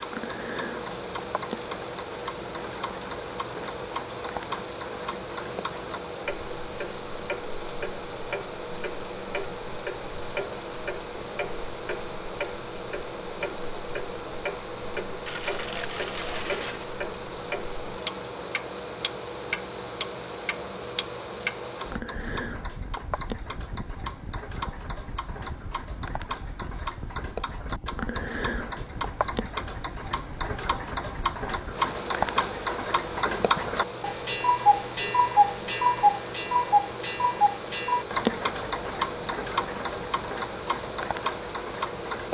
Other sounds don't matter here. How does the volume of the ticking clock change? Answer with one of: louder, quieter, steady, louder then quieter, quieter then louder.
louder.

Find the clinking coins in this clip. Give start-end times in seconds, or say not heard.
15.2-16.9.